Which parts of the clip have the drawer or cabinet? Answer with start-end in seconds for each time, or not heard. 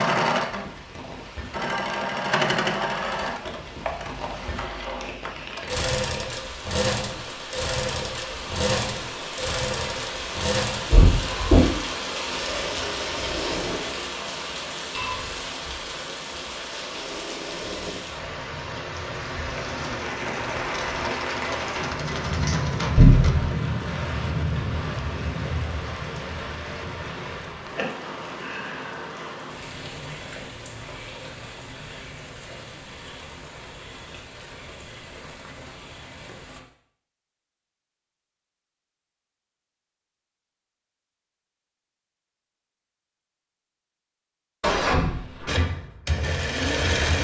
10.9-11.7, 22.9-23.5, 44.6-45.5.